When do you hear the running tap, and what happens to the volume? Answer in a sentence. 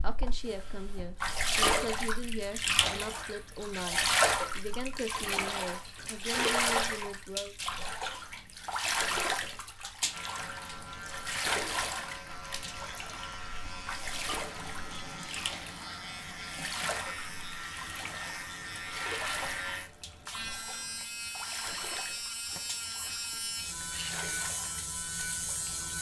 The running tap can be heard from 0.0 to 25.9 s, getting quieter.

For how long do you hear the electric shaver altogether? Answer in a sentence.
The electric shaver can be heard for 16 seconds in total.